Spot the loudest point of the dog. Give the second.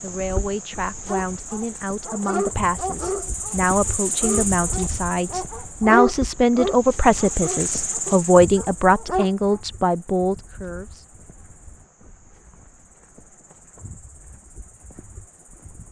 6 s.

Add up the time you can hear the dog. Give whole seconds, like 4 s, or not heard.
8 s.